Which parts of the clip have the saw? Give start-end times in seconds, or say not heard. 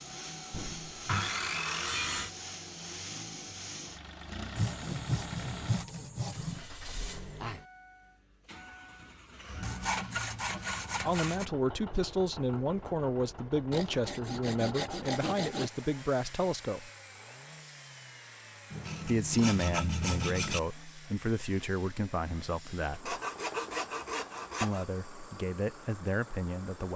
0.5-2.3, 4.5-6.7, 9.6-11.4, 13.7-15.7, 18.7-20.6, 23.1-24.9.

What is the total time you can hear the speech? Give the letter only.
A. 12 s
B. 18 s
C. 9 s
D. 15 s
A.